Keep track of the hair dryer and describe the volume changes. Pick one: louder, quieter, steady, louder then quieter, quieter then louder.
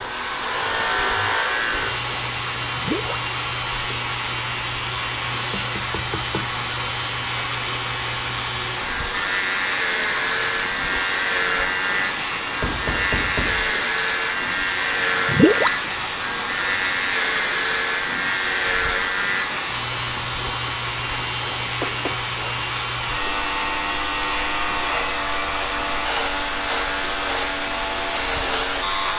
steady.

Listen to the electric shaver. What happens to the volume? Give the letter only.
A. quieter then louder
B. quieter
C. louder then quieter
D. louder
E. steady
E.